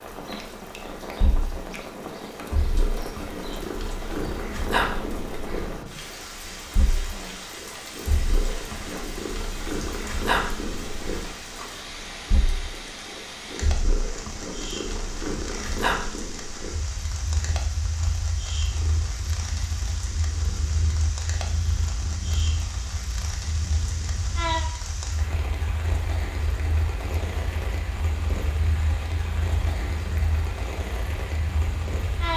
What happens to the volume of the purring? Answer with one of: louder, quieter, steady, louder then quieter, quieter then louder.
quieter.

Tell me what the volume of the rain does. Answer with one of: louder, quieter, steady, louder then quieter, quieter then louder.
steady.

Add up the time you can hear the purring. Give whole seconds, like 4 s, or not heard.
32 s.